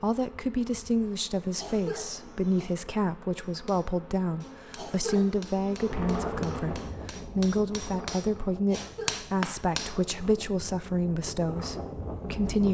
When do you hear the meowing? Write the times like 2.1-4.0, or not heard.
not heard.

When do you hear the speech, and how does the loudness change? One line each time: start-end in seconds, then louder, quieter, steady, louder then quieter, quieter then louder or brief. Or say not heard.
0.0-12.6 steady.